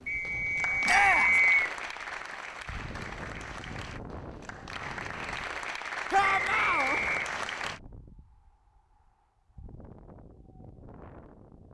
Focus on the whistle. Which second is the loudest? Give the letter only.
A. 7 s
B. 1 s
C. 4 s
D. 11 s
B.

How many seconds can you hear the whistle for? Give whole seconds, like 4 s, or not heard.
3 s.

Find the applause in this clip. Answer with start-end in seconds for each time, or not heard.
0.0-7.8.